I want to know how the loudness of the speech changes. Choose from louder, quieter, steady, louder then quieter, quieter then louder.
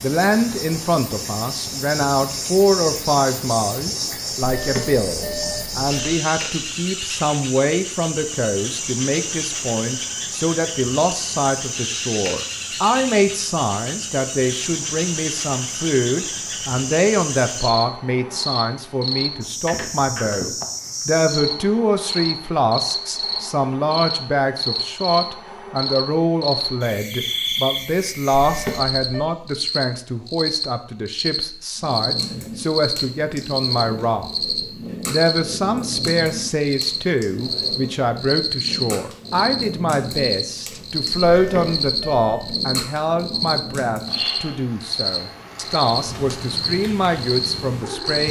steady.